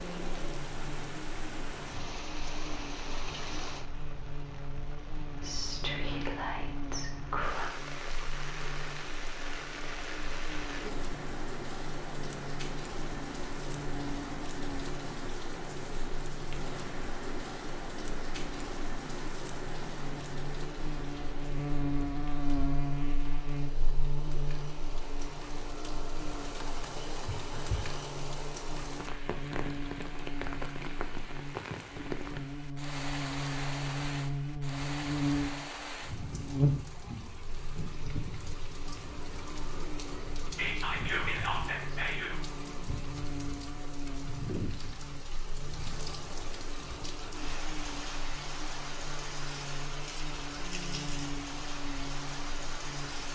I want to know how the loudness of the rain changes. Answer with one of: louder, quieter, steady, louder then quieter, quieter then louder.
steady.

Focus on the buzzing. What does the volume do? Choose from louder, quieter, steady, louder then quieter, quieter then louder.
louder then quieter.